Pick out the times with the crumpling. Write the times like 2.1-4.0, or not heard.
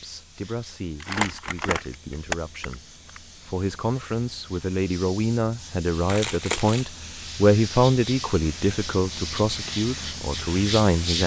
1.0-3.2, 6.0-6.8.